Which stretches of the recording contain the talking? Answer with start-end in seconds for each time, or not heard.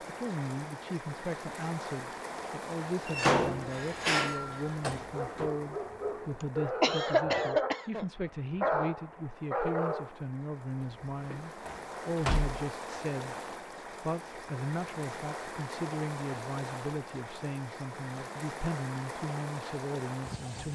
0.1-20.7.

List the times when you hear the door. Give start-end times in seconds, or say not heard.
3.0-5.5, 10.8-12.6.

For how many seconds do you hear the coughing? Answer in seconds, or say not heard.
2 s.